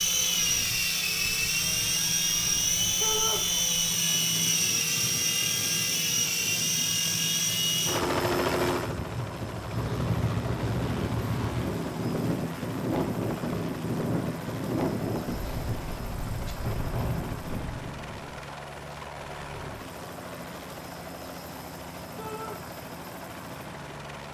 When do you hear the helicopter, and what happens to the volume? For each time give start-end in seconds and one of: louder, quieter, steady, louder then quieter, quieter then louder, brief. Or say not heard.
0.0-24.2 quieter.